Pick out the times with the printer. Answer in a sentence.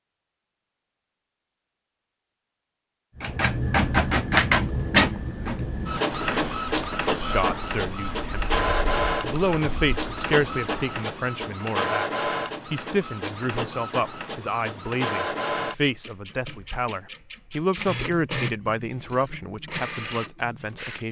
The printer can be heard from 3.2 to 21.0 s.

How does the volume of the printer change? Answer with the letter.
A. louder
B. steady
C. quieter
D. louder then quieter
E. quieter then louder
C.